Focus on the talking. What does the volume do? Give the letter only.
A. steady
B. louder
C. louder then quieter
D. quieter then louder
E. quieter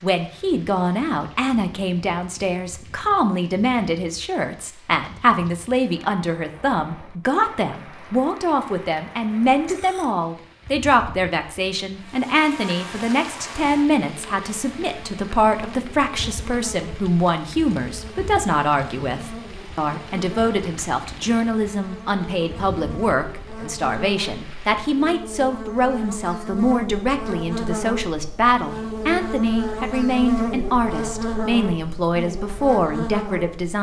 A.